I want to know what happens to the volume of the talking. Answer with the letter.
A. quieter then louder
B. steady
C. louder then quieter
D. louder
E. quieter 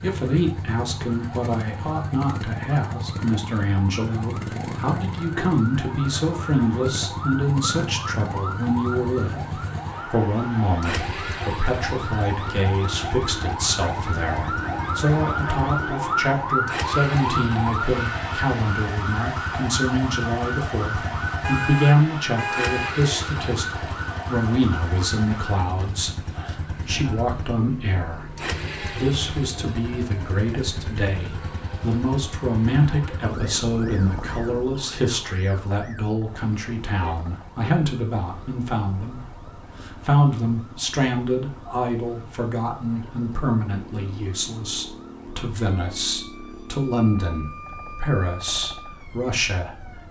B.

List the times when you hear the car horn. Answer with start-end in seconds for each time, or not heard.
21.4-22.9, 36.9-37.8.